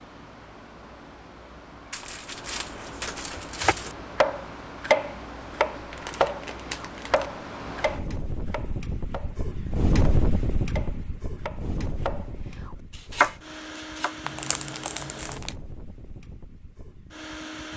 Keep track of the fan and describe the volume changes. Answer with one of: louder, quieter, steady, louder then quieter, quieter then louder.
louder then quieter.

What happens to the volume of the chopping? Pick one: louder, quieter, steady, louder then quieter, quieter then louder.
quieter then louder.